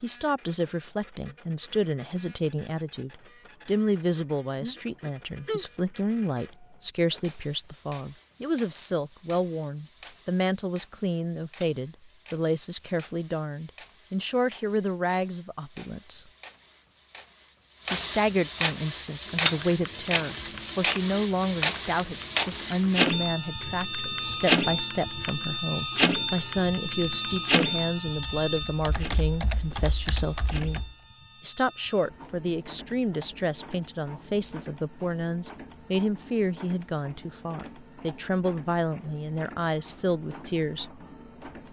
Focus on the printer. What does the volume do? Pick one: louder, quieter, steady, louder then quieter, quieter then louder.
louder then quieter.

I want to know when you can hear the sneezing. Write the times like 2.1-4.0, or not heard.
4.6-5.7.